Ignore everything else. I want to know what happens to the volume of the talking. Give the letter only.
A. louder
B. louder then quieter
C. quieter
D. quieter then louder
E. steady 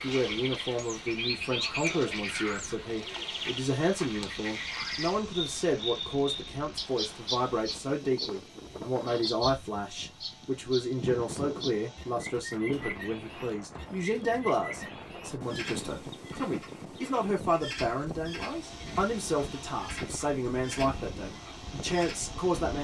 E.